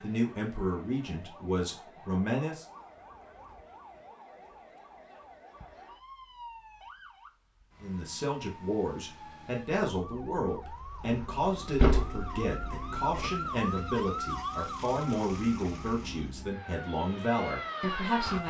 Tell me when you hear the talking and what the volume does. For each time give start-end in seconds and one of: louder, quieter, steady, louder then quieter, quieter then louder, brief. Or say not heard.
0.0-2.6 brief
7.8-18.4 steady.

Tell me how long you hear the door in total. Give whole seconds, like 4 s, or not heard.
2 s.